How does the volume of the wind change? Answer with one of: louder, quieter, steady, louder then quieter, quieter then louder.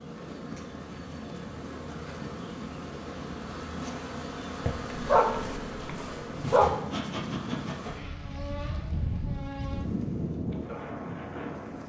louder.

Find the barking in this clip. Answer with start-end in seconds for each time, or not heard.
4.7-6.7.